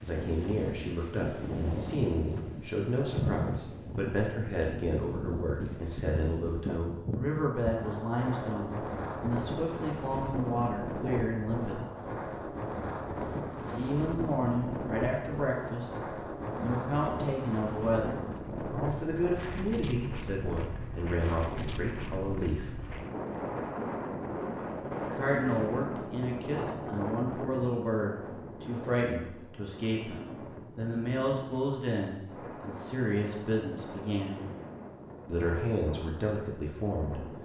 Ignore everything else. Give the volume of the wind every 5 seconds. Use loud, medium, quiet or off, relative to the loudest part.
loud, loud, loud, loud, loud, loud, medium, medium.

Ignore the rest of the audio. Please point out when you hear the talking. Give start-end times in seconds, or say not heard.
0.0-11.8, 13.7-15.9, 16.6-22.7, 25.0-34.5, 35.2-37.2.